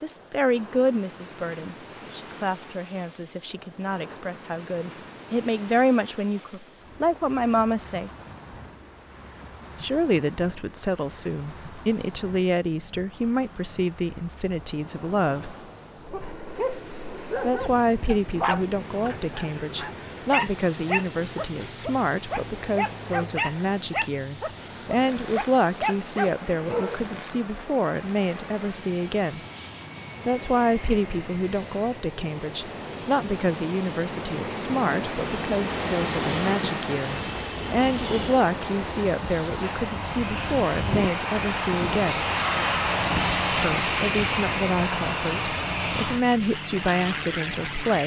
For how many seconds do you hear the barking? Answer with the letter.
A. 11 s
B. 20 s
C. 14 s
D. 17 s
A.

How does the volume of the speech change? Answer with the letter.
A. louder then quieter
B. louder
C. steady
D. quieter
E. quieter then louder
C.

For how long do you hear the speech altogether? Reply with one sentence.
The speech can be heard for 42 seconds in total.